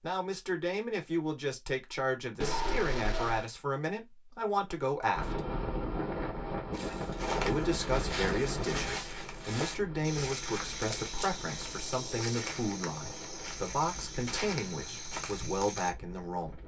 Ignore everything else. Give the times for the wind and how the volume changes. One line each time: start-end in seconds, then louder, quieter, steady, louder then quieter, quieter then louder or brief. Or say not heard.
5.2-16.6 quieter.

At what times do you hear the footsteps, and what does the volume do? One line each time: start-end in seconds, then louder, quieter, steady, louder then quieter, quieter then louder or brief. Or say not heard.
6.7-15.9 steady.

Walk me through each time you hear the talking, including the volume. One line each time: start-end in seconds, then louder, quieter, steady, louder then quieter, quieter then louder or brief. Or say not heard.
0.0-5.4 steady
7.4-16.6 steady.